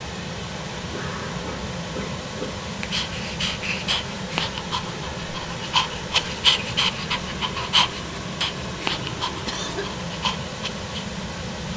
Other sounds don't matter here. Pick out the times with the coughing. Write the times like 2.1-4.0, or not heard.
0.9-2.6, 9.4-9.8.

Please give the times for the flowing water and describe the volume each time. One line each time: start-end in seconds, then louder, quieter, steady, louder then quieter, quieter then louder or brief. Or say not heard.
0.0-11.7 steady.